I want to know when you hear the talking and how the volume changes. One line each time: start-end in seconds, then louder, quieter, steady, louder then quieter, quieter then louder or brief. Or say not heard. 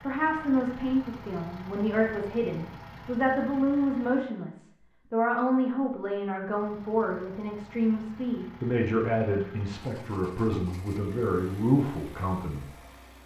0.0-12.7 steady.